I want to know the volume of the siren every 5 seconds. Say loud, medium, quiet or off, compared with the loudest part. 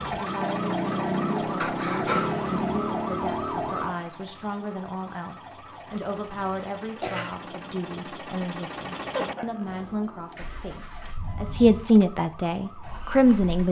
loud, quiet, quiet.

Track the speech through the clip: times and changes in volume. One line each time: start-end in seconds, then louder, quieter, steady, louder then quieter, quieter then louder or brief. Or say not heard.
0.0-13.6 louder.